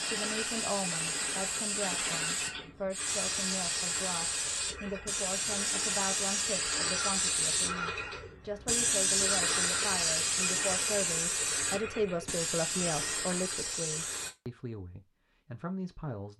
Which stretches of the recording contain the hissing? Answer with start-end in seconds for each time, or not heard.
0.0-14.3.